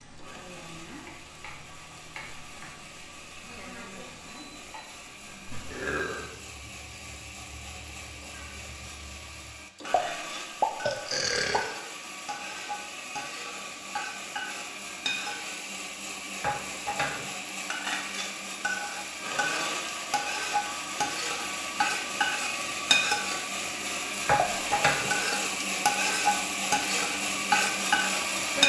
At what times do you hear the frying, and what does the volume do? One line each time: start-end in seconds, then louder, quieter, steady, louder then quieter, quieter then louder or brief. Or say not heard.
0.0-28.6 louder.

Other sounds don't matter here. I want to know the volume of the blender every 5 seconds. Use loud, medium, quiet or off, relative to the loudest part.
quiet, quiet, medium, medium, loud, loud.